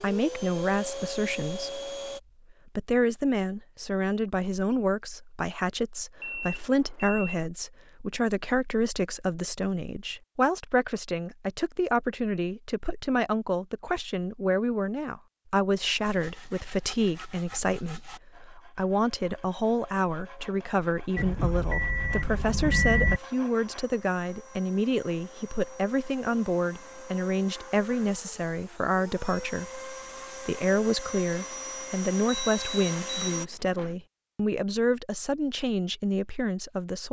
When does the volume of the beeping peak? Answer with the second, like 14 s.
23 s.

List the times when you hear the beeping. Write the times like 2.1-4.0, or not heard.
6.2-7.3, 21.1-23.2, 32.5-33.9.